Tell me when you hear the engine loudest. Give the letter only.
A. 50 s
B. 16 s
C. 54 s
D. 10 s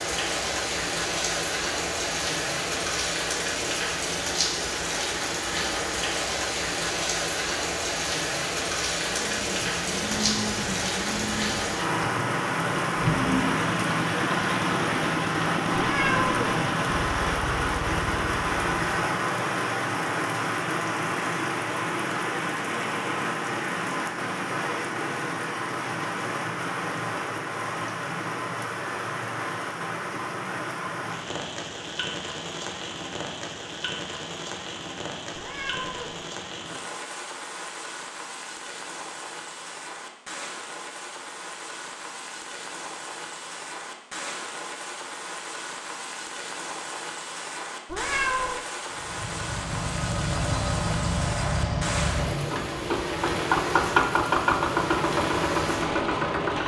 C.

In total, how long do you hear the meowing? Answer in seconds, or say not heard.
2 s.